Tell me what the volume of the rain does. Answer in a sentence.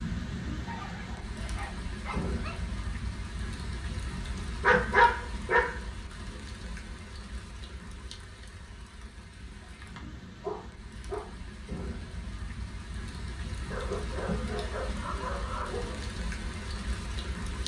The loudness of the rain goes down, then up.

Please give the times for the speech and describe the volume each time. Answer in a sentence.
You can't hear the speech here.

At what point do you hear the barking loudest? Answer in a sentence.
The loudest moment of the barking is at 5 seconds.